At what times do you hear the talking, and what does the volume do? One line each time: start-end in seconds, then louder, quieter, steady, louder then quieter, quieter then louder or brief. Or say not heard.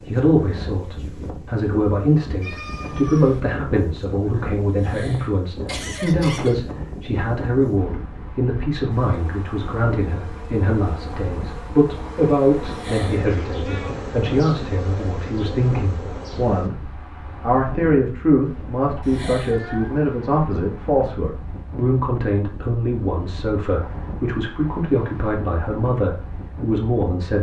0.0-27.3 steady.